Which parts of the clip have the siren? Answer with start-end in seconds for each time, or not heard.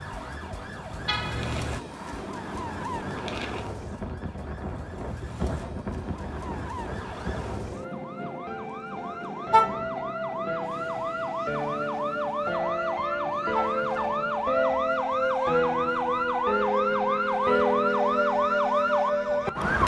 0.0-19.8.